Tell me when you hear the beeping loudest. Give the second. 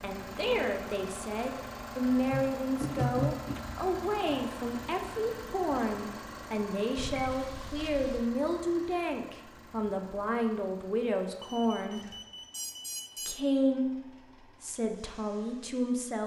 3 s.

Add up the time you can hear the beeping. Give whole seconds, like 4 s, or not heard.
5 s.